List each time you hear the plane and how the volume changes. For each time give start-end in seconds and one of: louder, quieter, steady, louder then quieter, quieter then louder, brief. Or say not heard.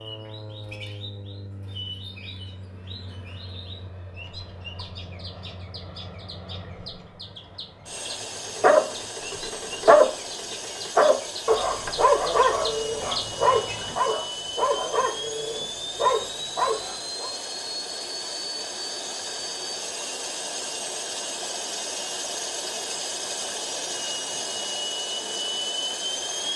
0.0-26.5 louder.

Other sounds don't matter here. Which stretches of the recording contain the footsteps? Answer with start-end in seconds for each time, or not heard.
not heard.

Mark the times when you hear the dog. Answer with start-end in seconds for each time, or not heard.
8.6-10.2, 10.8-17.3.